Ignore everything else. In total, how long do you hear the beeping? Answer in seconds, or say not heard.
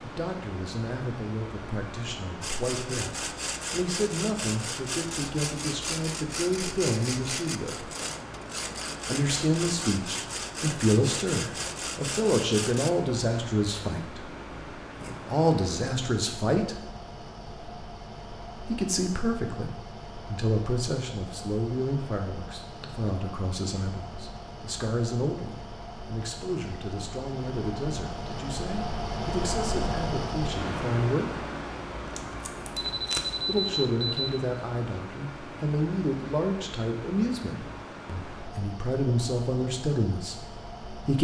2 s.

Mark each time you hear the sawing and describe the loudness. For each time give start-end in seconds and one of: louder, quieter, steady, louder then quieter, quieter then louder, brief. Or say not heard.
2.4-12.9 steady.